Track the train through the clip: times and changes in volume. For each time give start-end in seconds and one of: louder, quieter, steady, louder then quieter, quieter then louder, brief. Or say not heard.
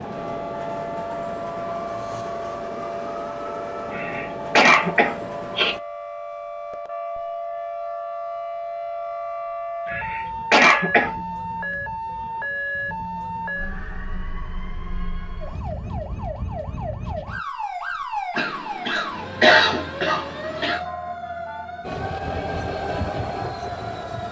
0.0-5.8 steady
21.8-24.2 brief.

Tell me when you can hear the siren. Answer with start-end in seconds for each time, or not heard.
0.0-24.2.